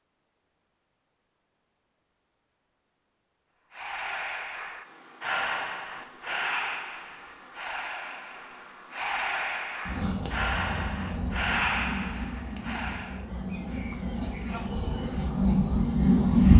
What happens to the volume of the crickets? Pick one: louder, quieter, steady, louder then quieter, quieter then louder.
louder.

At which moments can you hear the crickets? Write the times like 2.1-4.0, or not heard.
4.8-16.5.